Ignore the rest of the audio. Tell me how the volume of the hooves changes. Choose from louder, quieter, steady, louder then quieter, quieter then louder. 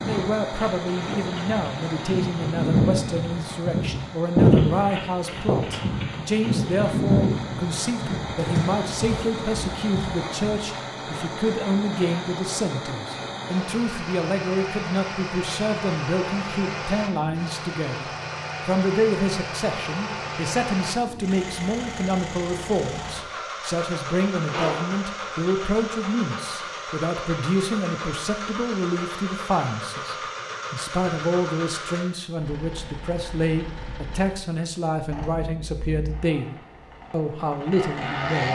louder then quieter.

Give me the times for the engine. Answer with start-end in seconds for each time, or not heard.
0.0-38.5.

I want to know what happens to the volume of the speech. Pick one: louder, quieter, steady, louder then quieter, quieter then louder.
steady.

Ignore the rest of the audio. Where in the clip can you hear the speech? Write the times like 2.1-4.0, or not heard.
0.0-38.5.